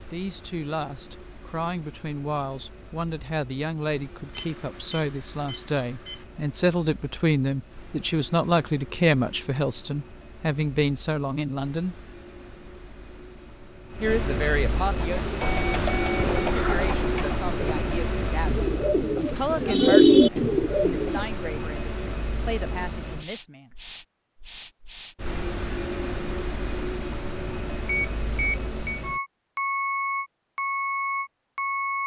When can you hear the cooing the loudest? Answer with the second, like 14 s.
20 s.